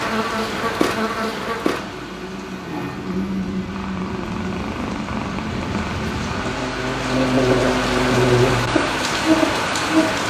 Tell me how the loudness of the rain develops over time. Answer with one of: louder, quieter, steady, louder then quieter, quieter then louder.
quieter then louder.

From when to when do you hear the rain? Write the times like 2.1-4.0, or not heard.
0.0-10.2.